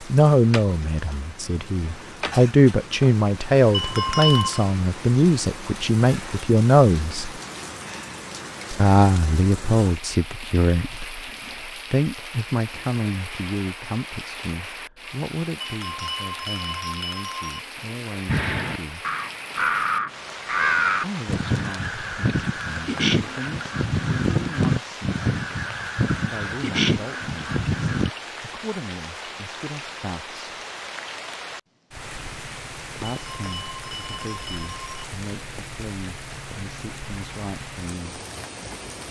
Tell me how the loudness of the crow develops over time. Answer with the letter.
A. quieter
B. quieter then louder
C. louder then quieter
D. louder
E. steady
E.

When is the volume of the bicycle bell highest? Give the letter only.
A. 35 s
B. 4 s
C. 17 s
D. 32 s
B.